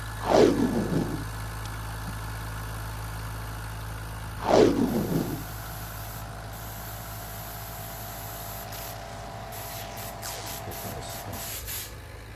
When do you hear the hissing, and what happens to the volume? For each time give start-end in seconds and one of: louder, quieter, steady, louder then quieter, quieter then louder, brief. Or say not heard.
4.8-12.3 louder.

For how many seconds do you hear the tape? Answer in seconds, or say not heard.
5 s.